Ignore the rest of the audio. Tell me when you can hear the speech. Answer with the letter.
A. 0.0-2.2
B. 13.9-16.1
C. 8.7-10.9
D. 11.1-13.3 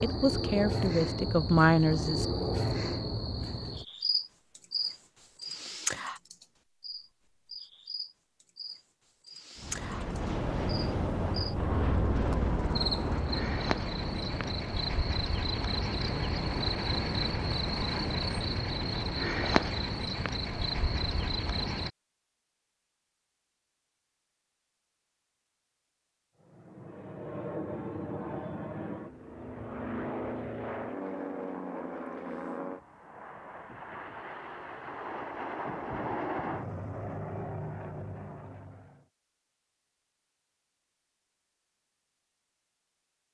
A.